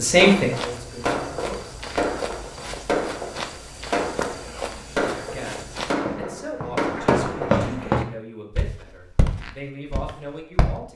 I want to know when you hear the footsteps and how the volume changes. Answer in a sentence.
The footsteps can be heard from 0.2 to 10.8 s, getting louder then quieter.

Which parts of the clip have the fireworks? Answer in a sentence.
The fireworks can be heard from 0.0 to 7.7 s.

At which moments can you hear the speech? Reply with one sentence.
You can hear the speech from 0.0 to 1.9 s and from 5.2 to 10.9 s.